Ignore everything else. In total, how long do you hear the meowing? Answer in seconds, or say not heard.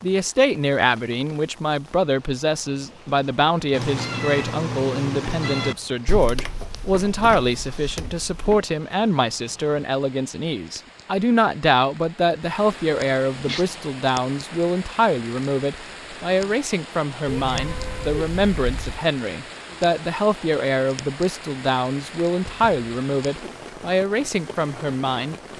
4 s.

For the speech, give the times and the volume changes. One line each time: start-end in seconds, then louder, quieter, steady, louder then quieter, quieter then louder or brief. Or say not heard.
0.0-25.4 steady.